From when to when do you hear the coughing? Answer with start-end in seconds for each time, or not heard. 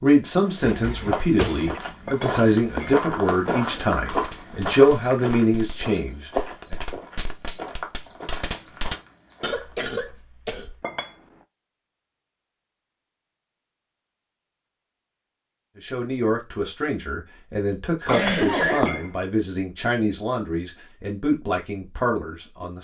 0.7-1.8, 9.4-10.8, 18.1-18.9.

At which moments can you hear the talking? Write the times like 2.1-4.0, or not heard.
0.0-6.8, 15.8-22.8.